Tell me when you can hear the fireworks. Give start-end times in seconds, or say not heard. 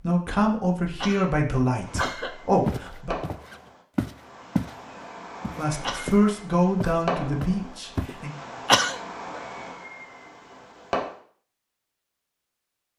1.8-11.2.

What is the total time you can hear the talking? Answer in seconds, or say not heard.
6 s.